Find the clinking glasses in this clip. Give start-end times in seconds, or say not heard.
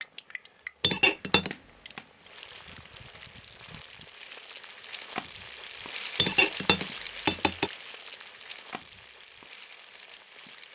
0.8-1.6, 6.2-7.7.